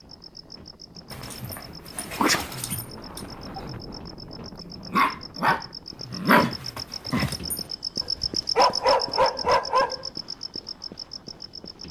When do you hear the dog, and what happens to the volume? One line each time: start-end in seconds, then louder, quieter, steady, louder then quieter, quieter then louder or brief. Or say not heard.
1.1-7.6 quieter then louder
8.2-10.0 brief.